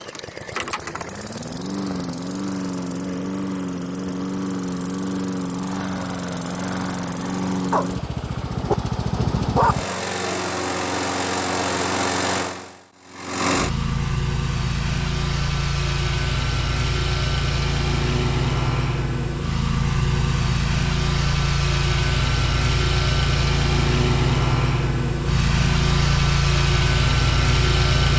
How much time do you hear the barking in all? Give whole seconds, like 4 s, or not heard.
2 s.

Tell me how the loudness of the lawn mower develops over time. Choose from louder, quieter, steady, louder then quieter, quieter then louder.
louder.